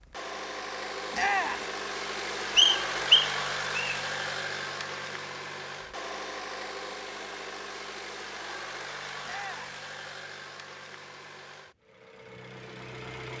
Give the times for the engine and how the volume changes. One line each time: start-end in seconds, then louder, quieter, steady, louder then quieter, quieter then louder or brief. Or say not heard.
0.0-13.3 quieter.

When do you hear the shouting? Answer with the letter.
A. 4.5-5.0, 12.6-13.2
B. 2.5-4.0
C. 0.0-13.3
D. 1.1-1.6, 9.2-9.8
D.